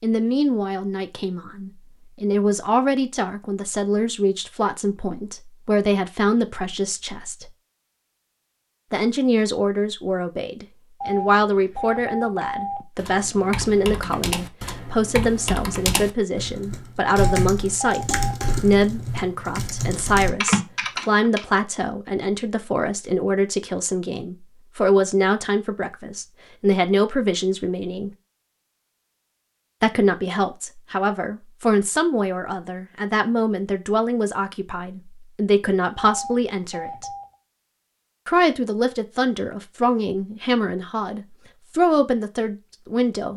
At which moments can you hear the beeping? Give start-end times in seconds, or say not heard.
11.0-12.8, 17.1-18.6, 36.0-37.4.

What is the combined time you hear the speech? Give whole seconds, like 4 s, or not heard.
39 s.